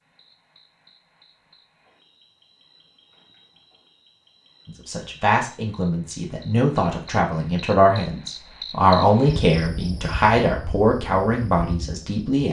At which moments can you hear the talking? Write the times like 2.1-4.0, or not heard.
4.7-12.4.